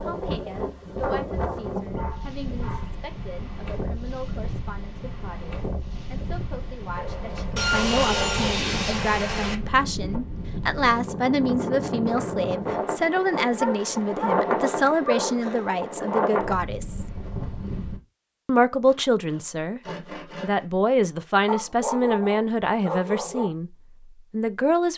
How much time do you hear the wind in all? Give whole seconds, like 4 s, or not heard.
18 s.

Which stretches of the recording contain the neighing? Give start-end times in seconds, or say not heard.
not heard.